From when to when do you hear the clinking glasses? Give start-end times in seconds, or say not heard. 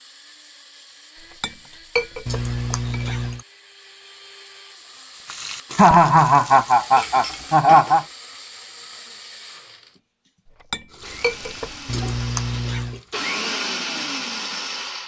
1.4-3.1, 7.0-8.1, 10.7-11.8.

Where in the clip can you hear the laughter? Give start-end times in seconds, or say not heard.
2.2-3.4, 5.8-8.1, 11.8-12.9.